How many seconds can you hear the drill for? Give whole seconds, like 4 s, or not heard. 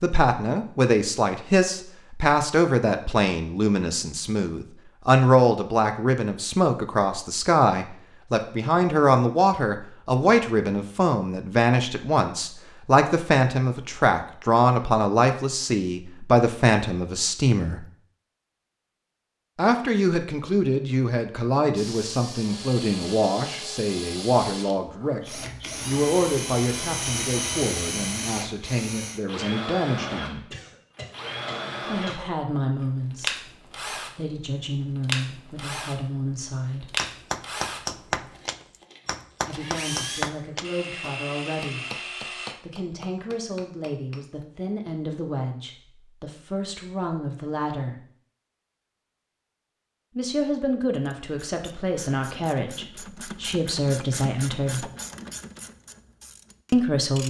21 s.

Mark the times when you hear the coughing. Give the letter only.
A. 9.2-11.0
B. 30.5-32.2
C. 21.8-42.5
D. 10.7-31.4
B.